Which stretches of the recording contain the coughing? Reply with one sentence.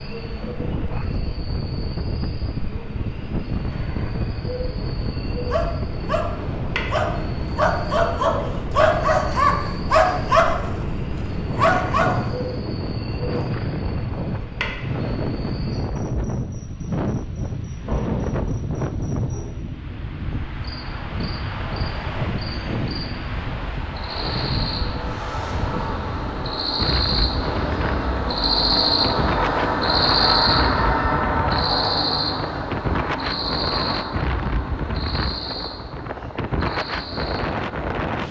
The coughing can't be heard in this clip.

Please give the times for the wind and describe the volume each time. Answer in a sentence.
The wind can be heard from 0.1 to 38.2 s, at a steady volume.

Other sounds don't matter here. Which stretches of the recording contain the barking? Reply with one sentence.
The barking can be heard from 5.5 to 12.6 s.